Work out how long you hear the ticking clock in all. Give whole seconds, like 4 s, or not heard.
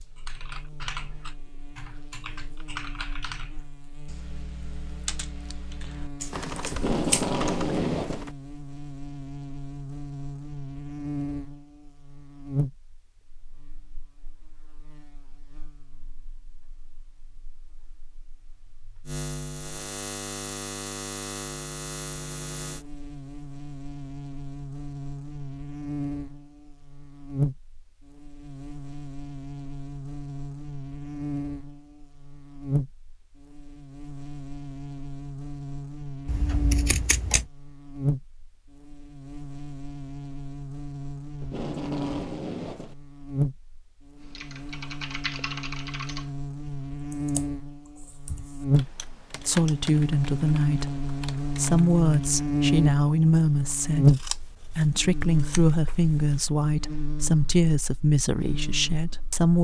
not heard.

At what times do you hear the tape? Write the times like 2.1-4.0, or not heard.
6.7-8.2, 41.4-43.0.